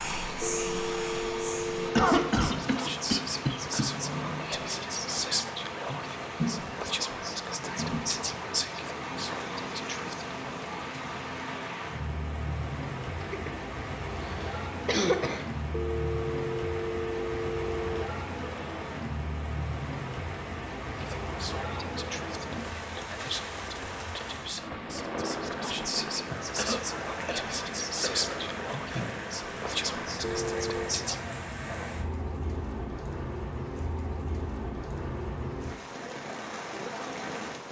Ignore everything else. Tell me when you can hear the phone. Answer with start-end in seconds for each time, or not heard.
0.4-2.1, 15.7-18.1, 30.2-30.9.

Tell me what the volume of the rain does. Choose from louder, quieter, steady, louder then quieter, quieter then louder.
steady.